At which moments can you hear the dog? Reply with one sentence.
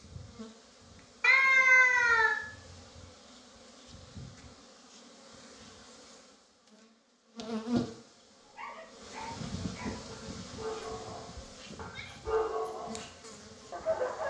You can hear the dog from 8.4 to 14.2 s.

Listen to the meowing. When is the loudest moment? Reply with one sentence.
The loudest moment of the meowing is at 2 seconds.